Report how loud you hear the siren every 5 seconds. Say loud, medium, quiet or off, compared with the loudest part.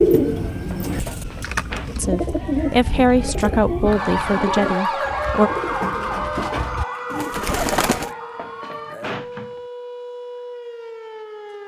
loud, loud, medium.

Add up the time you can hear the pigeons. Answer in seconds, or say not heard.
8 s.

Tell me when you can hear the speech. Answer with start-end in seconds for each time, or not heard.
1.9-5.5.